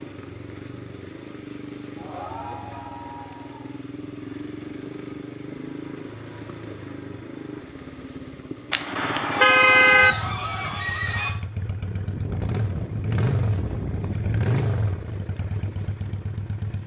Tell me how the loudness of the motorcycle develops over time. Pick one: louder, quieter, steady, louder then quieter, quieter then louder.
louder.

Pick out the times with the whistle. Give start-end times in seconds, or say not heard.
not heard.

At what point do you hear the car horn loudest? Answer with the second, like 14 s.
10 s.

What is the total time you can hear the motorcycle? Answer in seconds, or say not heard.
17 s.